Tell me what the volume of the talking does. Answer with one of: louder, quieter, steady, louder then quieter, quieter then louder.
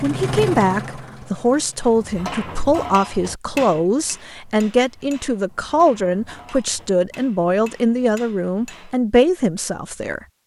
steady.